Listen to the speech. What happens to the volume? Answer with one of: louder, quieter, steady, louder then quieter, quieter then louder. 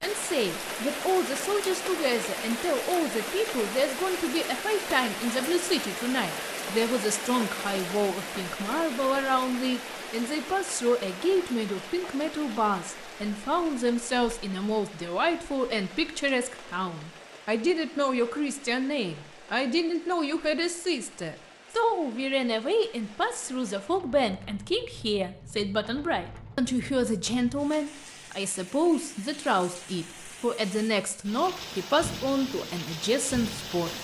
steady.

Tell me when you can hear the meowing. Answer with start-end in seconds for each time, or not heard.
not heard.